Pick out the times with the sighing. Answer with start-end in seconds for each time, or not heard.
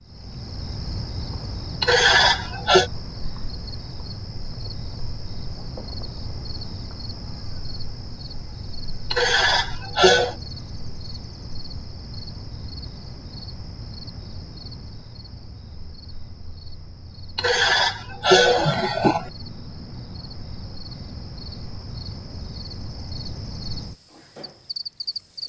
1.8-2.9, 9.1-10.3, 17.4-19.3.